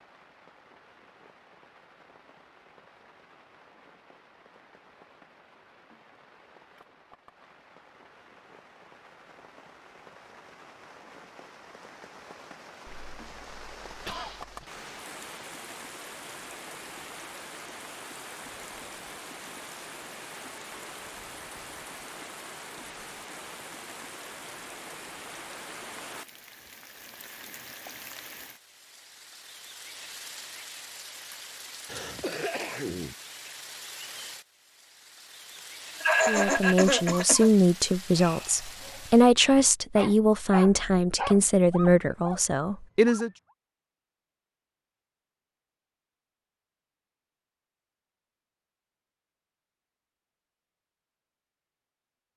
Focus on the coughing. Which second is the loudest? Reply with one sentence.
The volume of the coughing peaks at 36 seconds.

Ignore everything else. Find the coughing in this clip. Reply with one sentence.
You can hear the coughing from 12.8 to 14.7 s, from 31.9 to 33.1 s and from 36.0 to 37.5 s.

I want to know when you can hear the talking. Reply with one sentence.
The talking can be heard from 36.2 to 43.3 s.